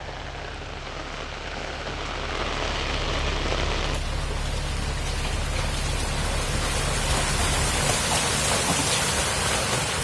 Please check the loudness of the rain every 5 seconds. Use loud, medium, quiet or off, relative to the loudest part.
medium, loud.